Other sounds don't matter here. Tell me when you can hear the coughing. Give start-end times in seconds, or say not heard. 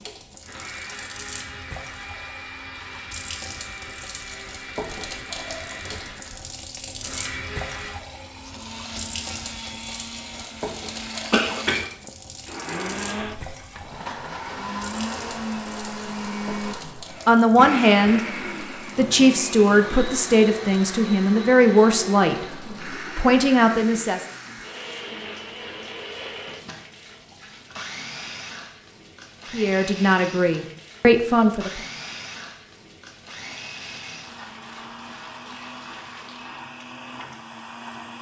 11.3-11.8.